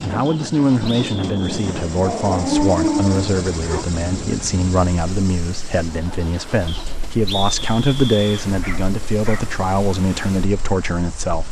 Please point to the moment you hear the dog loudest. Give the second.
3 s.